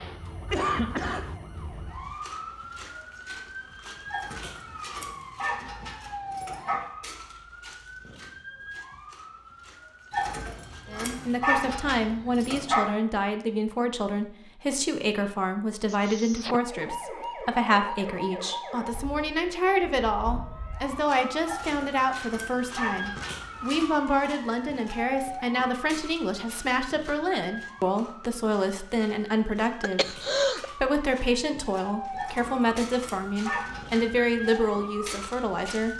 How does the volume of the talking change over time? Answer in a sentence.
The volume of the talking stays about the same.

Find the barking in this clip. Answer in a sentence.
The barking can be heard from 4.1 to 6.8 s, from 10.1 to 12.8 s, from 21.4 to 23.9 s and from 32.1 to 34.4 s.